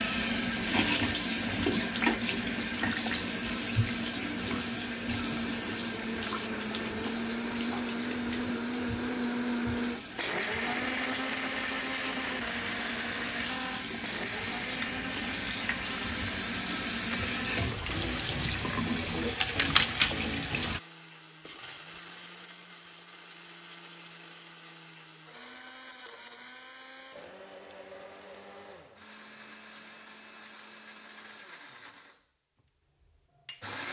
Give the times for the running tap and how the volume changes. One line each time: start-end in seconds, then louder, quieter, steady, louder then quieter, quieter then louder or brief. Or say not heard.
0.0-20.8 quieter then louder.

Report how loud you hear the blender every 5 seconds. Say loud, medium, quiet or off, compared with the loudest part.
medium, loud, loud, medium, quiet, quiet, quiet.